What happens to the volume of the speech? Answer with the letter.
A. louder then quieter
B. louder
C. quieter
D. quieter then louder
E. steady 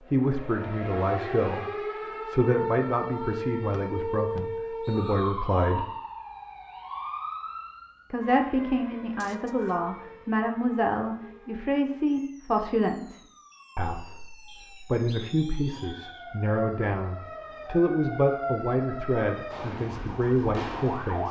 E.